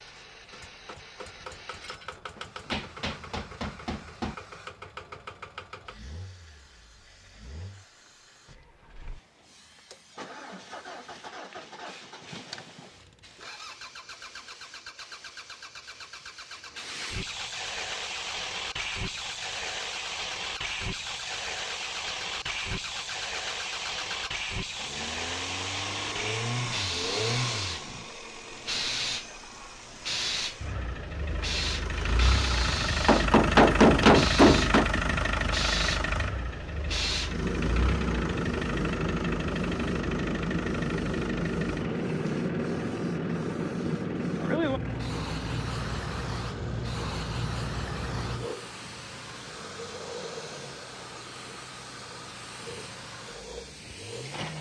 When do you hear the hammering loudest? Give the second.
34 s.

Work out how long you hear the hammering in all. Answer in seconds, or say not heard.
4 s.